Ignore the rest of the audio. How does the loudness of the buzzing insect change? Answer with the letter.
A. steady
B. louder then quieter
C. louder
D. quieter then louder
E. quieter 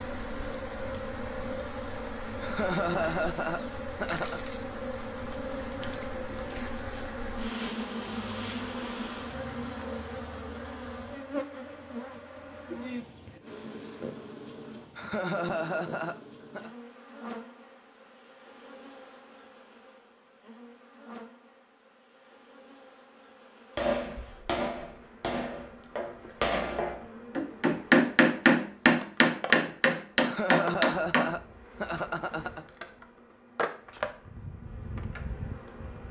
D.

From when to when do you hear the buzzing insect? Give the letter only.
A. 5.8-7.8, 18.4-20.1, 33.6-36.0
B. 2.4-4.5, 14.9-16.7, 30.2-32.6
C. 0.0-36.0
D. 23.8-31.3
C.